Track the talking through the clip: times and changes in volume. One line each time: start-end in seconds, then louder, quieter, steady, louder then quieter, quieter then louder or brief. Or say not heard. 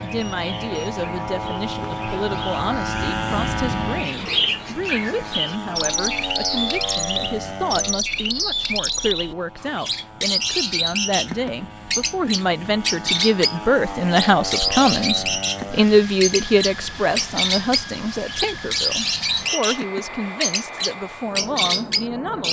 0.0-22.4 louder then quieter.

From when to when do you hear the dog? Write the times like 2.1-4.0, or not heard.
not heard.